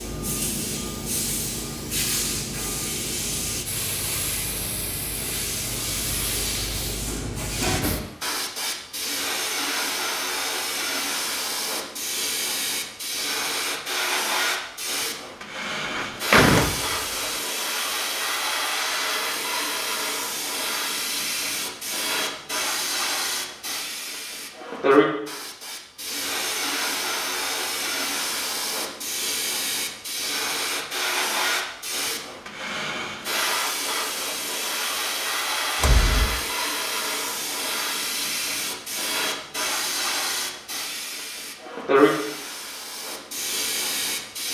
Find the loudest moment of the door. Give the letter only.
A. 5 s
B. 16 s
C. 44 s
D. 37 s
B.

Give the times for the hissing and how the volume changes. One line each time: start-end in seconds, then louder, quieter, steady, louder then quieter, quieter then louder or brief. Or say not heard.
0.0-44.4 steady.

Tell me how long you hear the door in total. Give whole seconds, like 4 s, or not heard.
2 s.